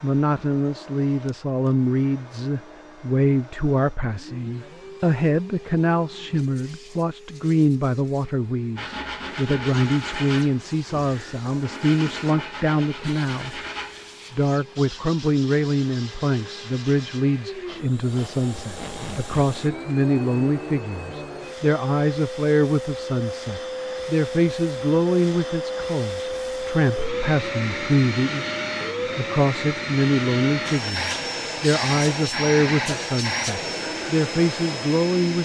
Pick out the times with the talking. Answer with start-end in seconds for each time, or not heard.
0.0-13.6, 14.3-28.4, 29.1-35.3.